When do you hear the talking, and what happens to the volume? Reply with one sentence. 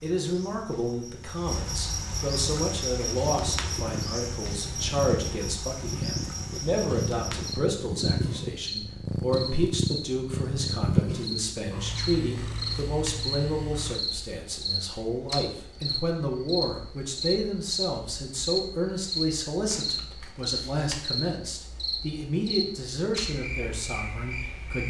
The talking can be heard from 0.0 to 24.8 s, at a steady volume.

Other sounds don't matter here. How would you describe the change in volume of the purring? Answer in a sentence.
The volume of the purring goes up, then down.